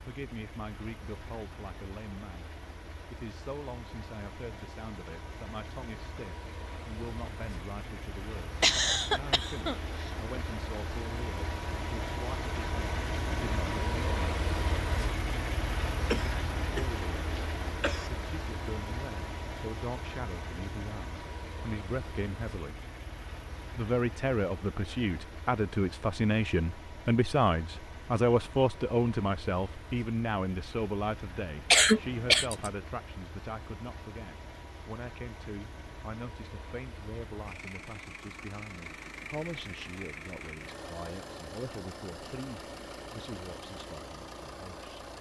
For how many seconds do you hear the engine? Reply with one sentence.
You can hear the engine for 45 seconds altogether.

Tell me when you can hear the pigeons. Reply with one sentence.
You can't hear the pigeons here.